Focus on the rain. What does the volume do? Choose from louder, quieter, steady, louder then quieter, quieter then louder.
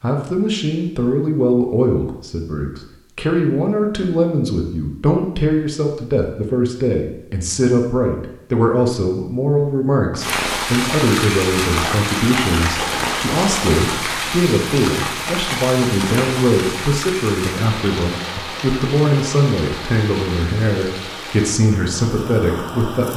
quieter.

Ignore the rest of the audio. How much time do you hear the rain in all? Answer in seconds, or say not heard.
13 s.